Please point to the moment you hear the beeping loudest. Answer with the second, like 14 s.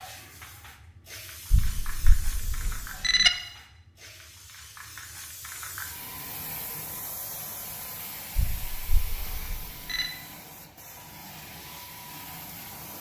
3 s.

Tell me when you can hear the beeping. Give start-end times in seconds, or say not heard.
1.5-3.3, 8.3-10.1.